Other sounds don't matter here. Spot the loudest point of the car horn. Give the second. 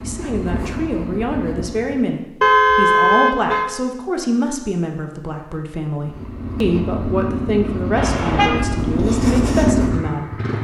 3 s.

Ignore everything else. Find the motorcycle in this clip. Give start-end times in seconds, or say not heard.
0.0-2.1, 6.0-10.5.